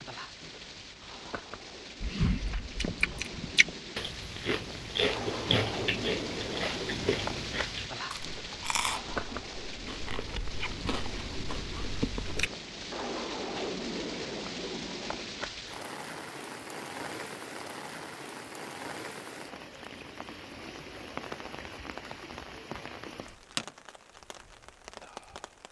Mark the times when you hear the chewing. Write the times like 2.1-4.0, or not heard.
2.0-12.5.